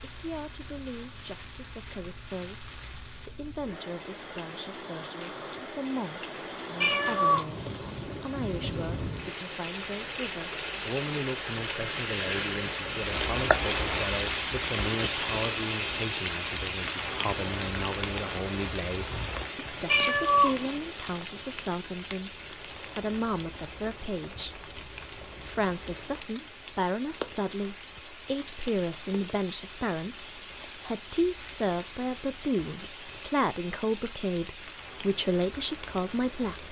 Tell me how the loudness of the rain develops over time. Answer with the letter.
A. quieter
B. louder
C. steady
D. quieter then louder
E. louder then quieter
E.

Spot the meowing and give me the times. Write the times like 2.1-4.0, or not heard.
6.8-7.9, 19.9-20.7.